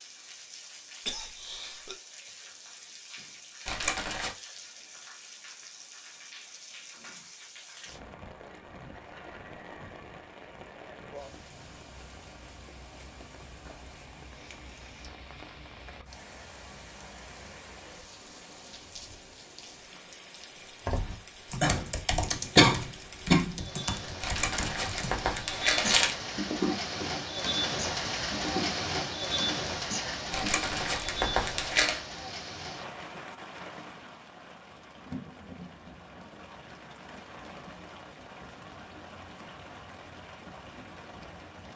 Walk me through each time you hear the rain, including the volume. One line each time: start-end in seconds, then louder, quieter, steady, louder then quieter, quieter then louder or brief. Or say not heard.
0.0-41.7 louder then quieter.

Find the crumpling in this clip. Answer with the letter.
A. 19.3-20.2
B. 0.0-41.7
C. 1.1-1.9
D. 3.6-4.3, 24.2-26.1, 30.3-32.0
D.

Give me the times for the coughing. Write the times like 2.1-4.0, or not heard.
1.1-1.9.